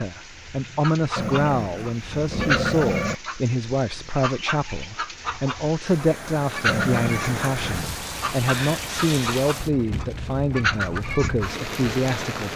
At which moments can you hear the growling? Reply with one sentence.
The growling can be heard from 1.1 to 3.1 s and from 6.7 to 7.9 s.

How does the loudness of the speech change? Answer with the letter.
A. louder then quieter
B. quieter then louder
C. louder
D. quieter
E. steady
E.